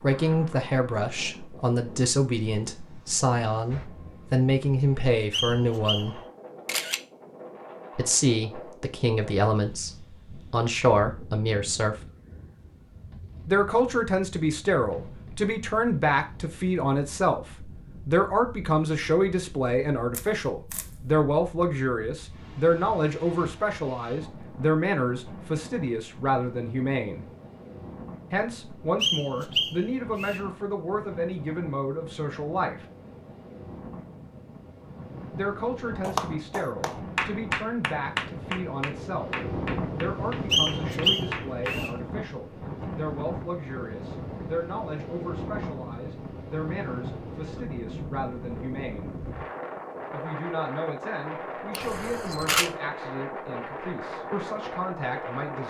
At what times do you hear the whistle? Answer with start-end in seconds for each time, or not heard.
5.3-6.1, 29.0-30.4, 40.5-41.9.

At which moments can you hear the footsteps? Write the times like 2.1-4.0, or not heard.
not heard.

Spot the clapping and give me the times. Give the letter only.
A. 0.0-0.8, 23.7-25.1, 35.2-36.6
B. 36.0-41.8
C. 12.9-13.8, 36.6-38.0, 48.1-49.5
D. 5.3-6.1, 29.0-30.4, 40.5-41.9
B.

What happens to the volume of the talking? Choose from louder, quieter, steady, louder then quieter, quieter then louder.
quieter.